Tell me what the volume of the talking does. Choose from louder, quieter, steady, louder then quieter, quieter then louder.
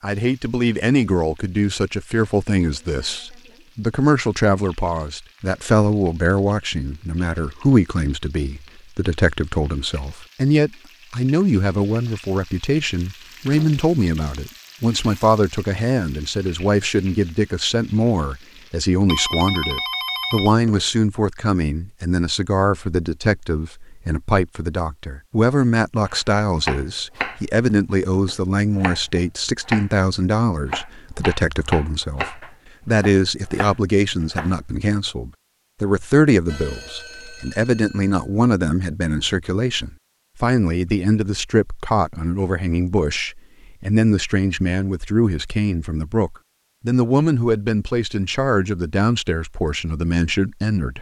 steady.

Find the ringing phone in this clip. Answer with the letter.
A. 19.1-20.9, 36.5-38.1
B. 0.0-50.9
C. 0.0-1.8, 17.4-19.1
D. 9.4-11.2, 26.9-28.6
A.